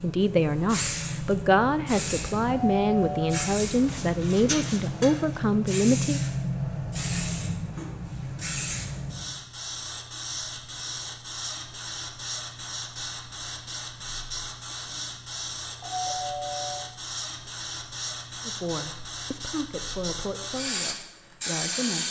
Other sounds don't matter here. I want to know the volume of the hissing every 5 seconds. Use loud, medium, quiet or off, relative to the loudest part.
loud, loud, medium, medium, loud.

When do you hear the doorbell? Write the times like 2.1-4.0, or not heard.
2.8-3.4, 15.8-16.8.